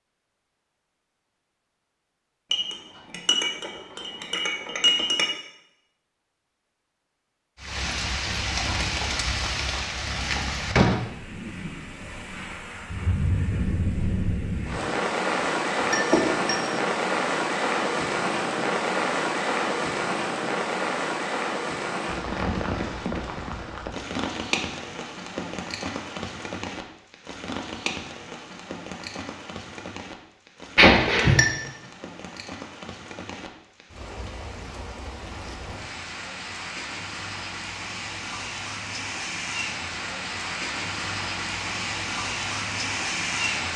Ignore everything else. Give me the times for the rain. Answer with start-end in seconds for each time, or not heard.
7.5-43.7.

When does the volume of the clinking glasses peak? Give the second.
31 s.